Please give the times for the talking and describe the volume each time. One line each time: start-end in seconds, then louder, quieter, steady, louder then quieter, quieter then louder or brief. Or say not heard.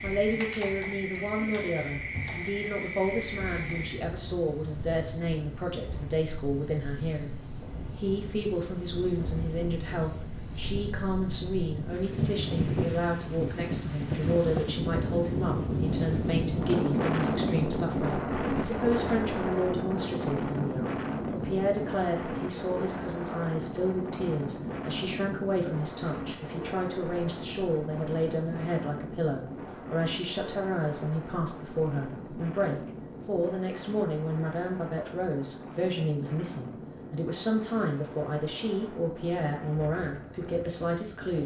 0.0-41.4 steady.